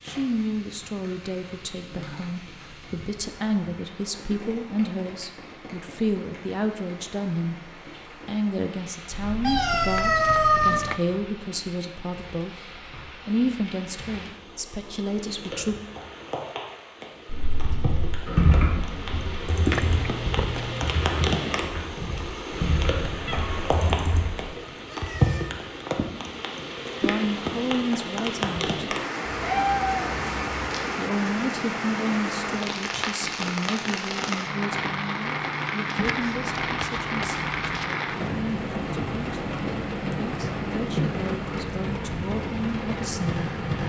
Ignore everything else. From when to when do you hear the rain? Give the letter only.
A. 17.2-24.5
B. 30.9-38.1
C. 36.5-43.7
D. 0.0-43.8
D.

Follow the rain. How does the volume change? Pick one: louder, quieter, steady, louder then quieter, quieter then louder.
louder.